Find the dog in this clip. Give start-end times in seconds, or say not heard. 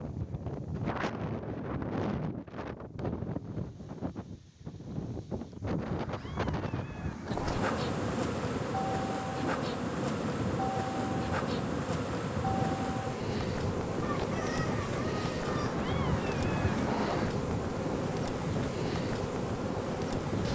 not heard.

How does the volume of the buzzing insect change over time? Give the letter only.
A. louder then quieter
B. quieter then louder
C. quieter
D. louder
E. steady
E.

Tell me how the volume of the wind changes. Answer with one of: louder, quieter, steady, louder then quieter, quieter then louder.
steady.